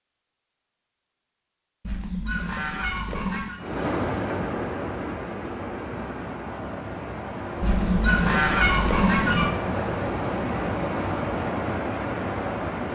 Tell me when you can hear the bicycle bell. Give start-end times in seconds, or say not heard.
not heard.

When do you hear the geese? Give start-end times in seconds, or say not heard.
1.8-3.6, 7.6-9.5.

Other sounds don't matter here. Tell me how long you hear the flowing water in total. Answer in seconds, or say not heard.
9 s.